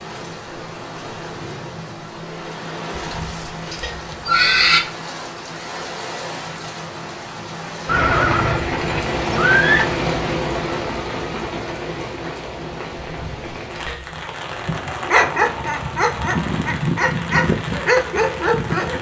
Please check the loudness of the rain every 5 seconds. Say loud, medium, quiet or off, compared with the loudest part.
medium, loud, loud, medium.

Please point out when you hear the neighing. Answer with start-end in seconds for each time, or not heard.
3.0-4.8, 7.8-9.8, 13.0-14.3.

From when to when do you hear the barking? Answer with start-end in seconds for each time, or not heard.
14.2-18.9.